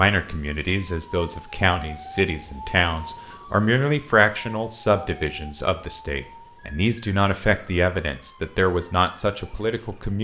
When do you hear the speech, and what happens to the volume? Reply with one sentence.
The speech can be heard from 0.0 to 10.1 s, at a steady volume.